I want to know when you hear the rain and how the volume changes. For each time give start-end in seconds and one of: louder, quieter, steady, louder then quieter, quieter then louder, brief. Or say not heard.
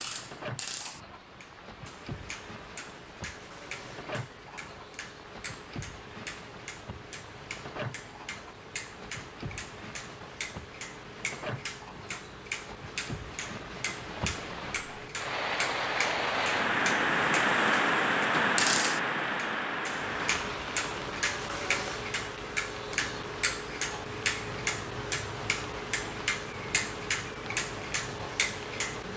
0.0-29.1 louder then quieter.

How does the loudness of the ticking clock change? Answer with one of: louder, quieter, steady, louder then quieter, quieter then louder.
louder.